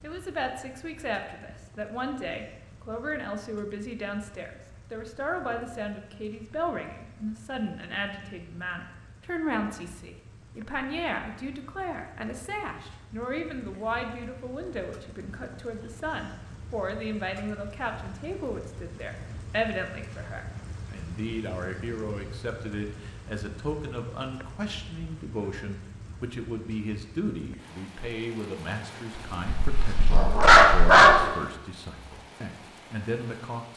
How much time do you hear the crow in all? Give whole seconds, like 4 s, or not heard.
not heard.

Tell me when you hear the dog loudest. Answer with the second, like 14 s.
31 s.